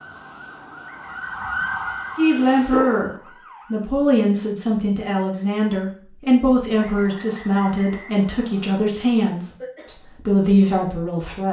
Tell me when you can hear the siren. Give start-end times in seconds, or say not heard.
0.0-3.9.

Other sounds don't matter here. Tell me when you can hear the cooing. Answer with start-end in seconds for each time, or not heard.
not heard.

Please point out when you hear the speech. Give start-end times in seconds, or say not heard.
2.1-11.4.